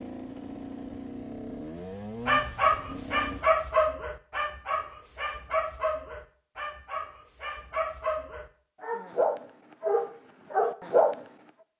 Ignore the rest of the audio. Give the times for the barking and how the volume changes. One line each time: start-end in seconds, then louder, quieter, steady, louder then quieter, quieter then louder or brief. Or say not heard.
2.2-11.2 quieter then louder.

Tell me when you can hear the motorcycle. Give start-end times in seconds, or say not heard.
0.0-3.5.